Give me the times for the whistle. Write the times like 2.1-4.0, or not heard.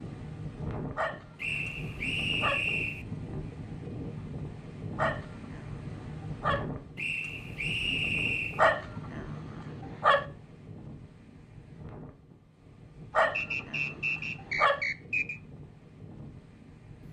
1.4-3.0, 7.0-8.6, 13.3-15.4.